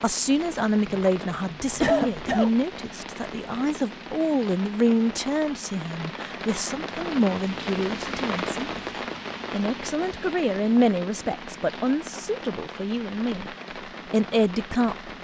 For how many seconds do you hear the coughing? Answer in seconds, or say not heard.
2 s.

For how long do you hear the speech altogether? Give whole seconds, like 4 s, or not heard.
14 s.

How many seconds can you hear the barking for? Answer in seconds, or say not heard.
not heard.